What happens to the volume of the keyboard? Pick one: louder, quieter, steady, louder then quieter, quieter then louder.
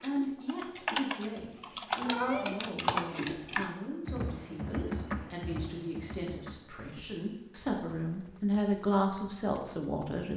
quieter.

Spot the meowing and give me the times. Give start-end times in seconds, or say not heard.
2.0-2.6.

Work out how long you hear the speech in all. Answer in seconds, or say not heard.
10 s.